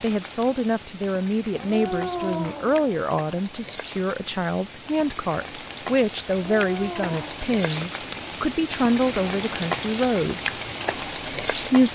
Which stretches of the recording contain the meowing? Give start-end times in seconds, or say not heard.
1.5-3.0, 6.3-7.3.